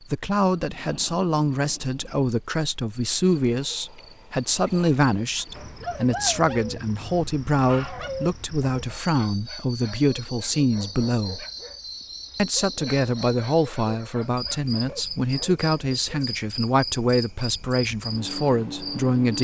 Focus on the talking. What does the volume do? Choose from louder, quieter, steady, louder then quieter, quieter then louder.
steady.